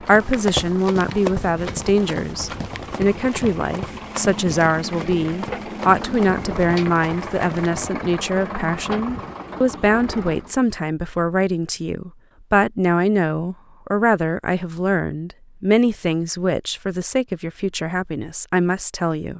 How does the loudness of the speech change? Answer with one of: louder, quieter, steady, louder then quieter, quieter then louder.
steady.